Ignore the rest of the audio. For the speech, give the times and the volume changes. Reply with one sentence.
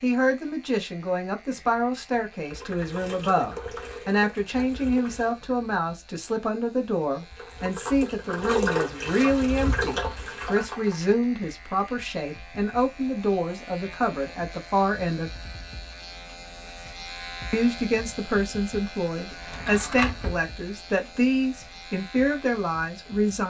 You can hear the speech from 0.0 to 15.3 s, at a steady volume; and from 17.5 to 23.4 s, at a steady volume.